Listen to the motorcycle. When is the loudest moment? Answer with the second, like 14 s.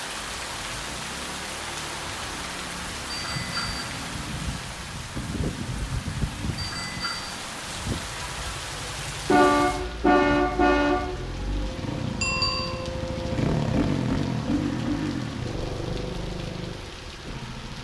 14 s.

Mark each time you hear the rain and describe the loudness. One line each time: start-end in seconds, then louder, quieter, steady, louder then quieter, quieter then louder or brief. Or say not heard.
0.0-17.7 quieter.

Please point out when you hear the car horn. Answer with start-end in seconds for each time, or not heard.
9.2-11.0.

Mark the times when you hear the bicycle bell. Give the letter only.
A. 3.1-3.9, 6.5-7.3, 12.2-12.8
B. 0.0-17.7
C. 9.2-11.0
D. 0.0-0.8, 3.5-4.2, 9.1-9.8
A.